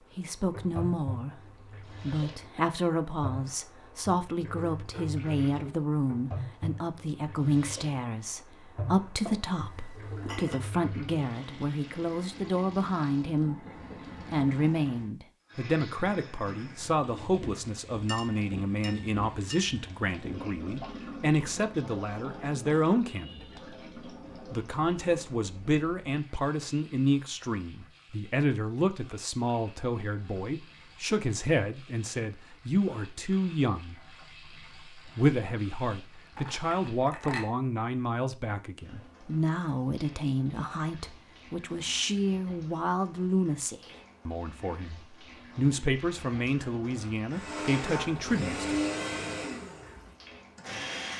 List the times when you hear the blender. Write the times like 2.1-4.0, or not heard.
47.3-51.1.